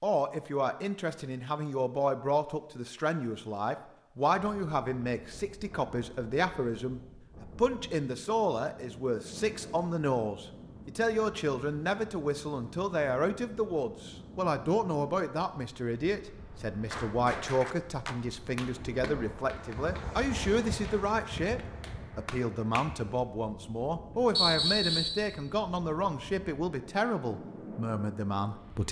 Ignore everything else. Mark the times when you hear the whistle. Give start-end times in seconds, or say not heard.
24.4-25.2.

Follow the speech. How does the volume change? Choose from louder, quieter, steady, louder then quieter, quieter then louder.
steady.